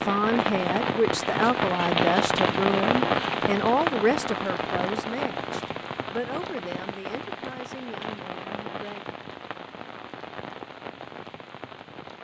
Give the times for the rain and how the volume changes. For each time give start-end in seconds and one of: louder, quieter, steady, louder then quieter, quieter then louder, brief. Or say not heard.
0.0-12.2 quieter.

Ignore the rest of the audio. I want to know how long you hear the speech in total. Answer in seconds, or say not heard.
9 s.